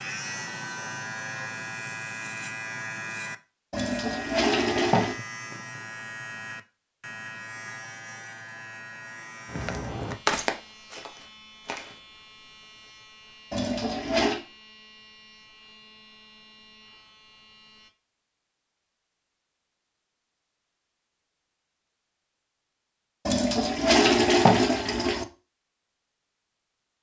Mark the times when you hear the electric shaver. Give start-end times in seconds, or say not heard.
0.0-17.9.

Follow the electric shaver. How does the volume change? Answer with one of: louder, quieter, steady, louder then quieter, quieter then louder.
quieter.